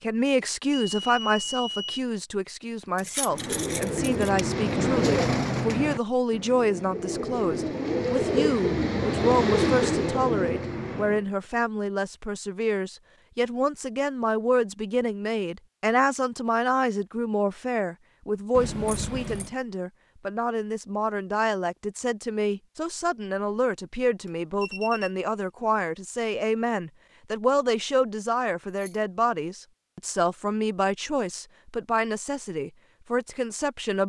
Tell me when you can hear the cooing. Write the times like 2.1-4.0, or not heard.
3.2-11.2.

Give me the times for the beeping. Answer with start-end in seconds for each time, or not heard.
0.7-2.0, 24.2-25.1.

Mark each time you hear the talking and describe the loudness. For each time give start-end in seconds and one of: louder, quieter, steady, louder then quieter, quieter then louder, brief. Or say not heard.
0.0-34.0 steady.